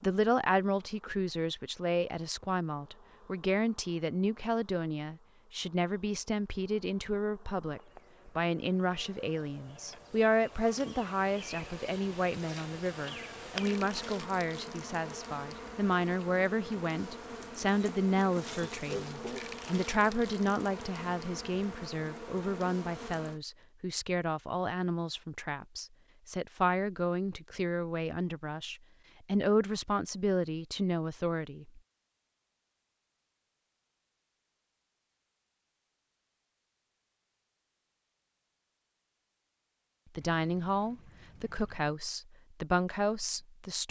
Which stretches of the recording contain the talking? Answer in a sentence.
The talking can be heard from 0.0 to 31.8 s and from 40.1 to 43.8 s.